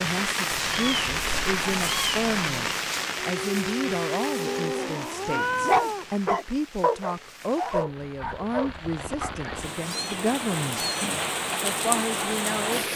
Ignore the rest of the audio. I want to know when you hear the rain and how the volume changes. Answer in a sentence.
The rain can be heard from 0.0 to 12.9 s, getting quieter then louder.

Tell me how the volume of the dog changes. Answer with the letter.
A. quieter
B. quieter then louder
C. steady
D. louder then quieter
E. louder
D.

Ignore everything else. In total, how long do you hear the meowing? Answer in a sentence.
The meowing can be heard for 5 seconds in total.